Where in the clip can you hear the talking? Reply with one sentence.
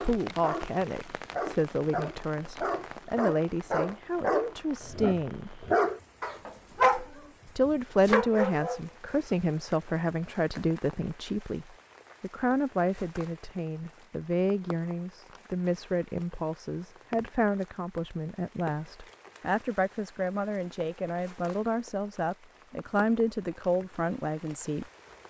The talking can be heard from 0.0 to 5.7 s and from 7.5 to 24.9 s.